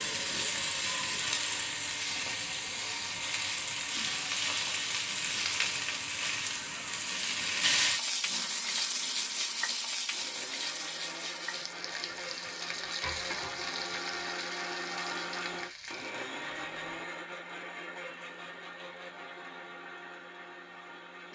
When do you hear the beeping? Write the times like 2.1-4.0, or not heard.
not heard.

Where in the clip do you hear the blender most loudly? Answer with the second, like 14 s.
15 s.